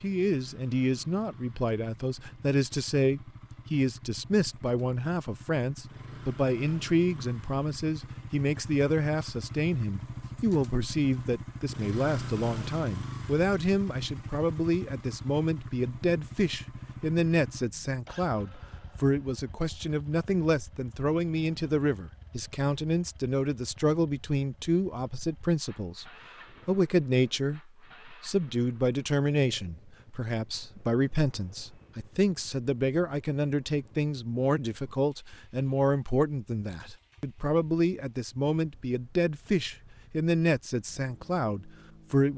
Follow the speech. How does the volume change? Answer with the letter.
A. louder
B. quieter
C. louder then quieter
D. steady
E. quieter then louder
D.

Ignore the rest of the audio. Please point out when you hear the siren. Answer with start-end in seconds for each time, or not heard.
not heard.